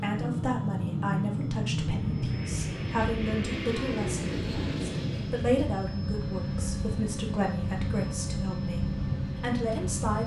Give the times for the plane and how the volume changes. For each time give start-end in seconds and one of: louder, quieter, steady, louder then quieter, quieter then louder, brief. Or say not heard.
0.0-10.2 steady.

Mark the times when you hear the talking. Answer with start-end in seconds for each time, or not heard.
0.0-10.2.